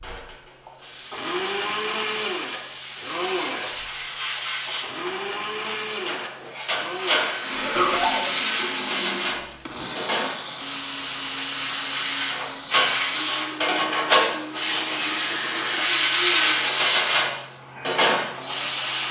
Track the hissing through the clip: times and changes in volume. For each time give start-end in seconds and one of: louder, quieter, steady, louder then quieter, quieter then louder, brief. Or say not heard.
0.0-19.0 louder.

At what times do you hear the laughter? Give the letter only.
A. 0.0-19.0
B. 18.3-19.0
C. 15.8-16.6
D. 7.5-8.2
D.